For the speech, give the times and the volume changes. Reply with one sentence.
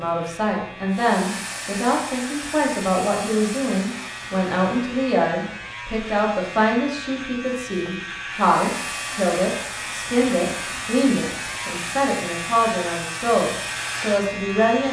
You can hear the speech from 0.0 to 14.8 s, at a steady volume.